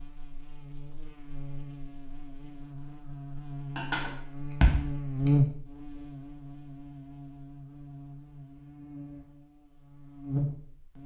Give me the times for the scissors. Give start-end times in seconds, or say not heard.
3.8-5.3.